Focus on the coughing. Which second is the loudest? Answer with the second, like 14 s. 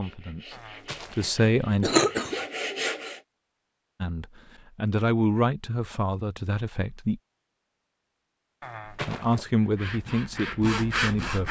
2 s.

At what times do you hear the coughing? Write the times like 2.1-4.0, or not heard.
0.7-2.4, 8.6-9.4.